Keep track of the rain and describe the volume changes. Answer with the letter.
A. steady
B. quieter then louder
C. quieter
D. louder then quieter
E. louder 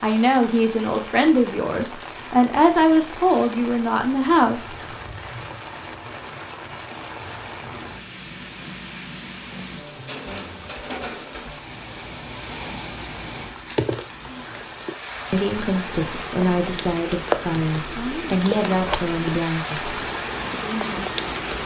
E.